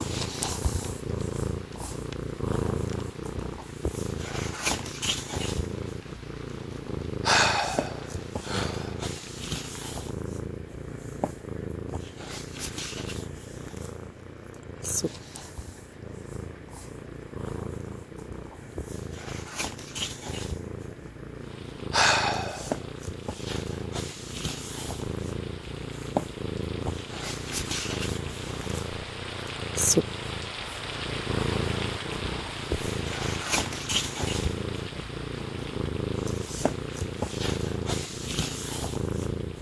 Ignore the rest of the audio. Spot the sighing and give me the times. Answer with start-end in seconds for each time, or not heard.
7.2-8.9, 21.9-22.8.